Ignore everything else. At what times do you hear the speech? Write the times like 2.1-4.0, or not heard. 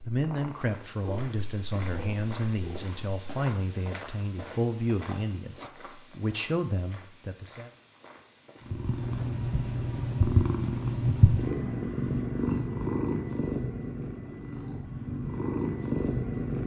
0.1-7.7.